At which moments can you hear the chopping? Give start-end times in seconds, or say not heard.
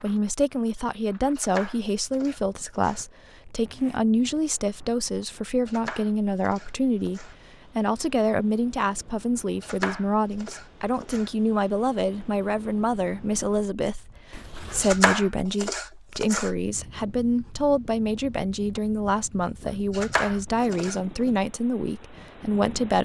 1.4-3.0, 5.7-7.3, 9.6-11.3, 14.8-16.5, 19.9-21.0.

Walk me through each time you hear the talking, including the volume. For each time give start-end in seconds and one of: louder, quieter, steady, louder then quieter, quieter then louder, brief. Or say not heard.
0.0-22.9 steady.